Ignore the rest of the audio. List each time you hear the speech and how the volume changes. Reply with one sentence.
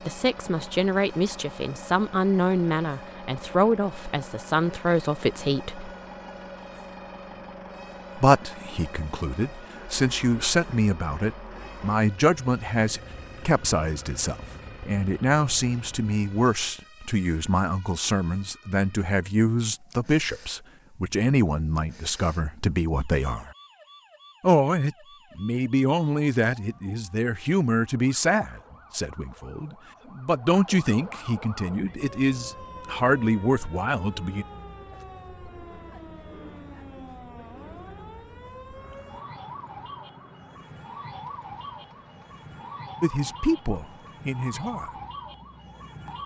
You can hear the speech from 0.1 to 5.9 s, at a steady volume; from 8.2 to 23.5 s, at a steady volume; from 24.4 to 34.5 s, getting quieter then louder; and briefly from 43.0 to 45.0 s.